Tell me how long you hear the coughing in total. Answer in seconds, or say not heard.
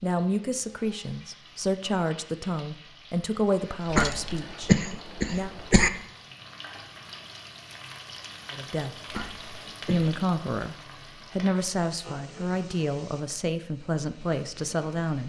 3 s.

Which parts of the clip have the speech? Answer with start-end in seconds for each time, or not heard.
0.0-5.5, 8.5-8.9, 9.8-15.2.